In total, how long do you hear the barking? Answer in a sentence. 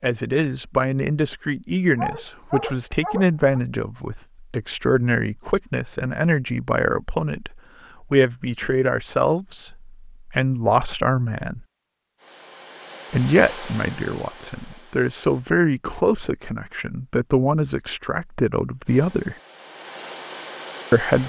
The barking can be heard for 2 seconds in total.